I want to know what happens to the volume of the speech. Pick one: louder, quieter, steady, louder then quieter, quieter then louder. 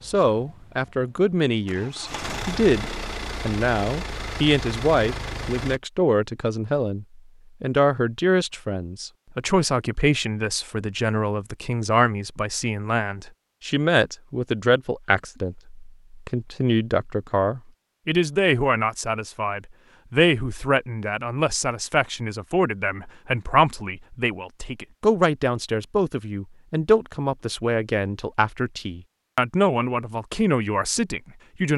steady.